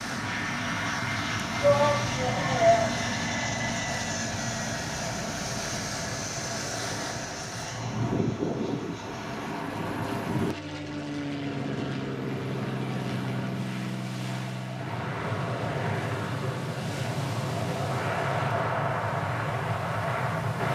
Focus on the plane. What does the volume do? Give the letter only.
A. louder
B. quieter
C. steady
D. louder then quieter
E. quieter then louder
E.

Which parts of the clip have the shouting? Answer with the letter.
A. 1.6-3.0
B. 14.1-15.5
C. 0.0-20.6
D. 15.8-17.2
A.